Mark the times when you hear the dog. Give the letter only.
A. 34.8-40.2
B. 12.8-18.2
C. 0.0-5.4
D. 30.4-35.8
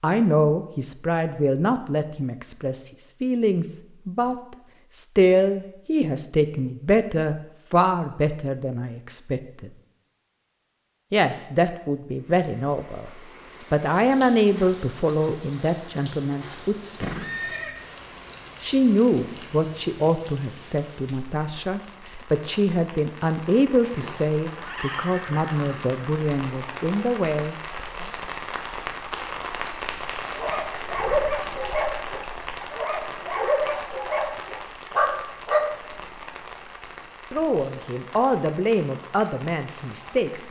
D.